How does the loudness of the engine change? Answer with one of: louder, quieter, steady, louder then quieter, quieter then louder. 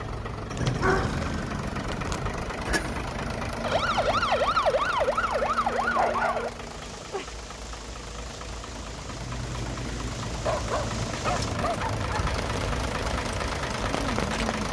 quieter then louder.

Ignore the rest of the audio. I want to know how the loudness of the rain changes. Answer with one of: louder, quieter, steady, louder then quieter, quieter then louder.
louder.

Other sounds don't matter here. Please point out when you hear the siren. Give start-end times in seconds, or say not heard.
3.6-6.5.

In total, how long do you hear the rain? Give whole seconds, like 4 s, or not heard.
8 s.